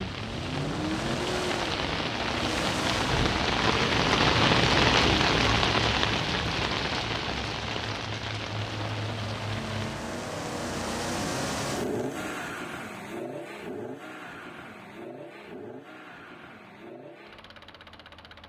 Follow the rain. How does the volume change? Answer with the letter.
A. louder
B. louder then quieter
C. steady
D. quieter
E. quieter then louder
B.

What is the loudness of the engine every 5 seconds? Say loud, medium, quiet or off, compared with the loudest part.
loud, medium, loud, quiet.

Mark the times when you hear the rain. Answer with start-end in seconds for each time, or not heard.
0.0-12.5.